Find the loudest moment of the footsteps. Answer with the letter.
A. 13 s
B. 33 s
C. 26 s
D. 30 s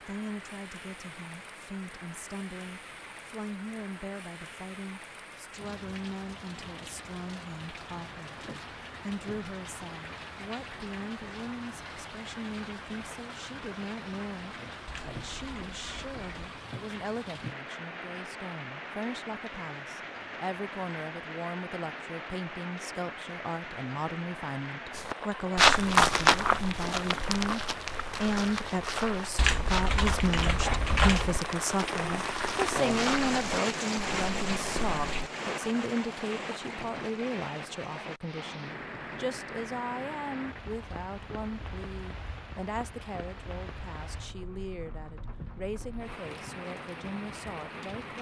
C.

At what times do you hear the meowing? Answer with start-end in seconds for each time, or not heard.
not heard.